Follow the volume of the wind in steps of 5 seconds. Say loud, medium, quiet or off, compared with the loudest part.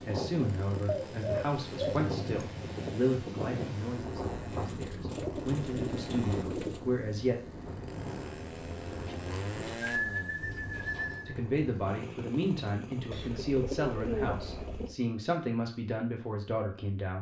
loud, loud, medium, off.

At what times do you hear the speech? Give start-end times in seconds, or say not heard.
0.1-7.4, 11.2-17.1.